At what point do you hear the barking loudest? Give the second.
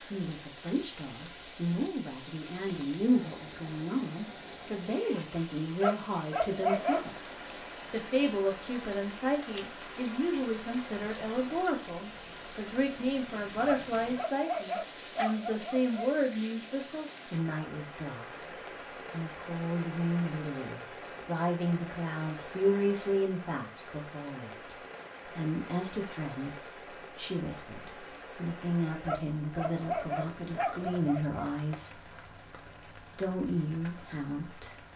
7 s.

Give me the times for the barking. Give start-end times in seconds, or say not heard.
5.8-7.0, 13.6-16.1, 29.1-31.4.